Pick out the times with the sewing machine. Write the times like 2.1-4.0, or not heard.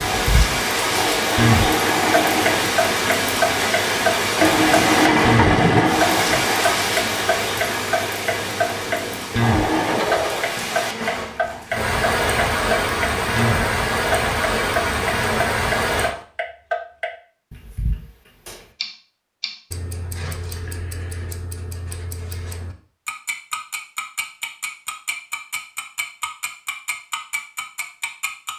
0.0-10.6.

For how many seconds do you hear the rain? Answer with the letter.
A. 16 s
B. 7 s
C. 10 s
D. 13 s
A.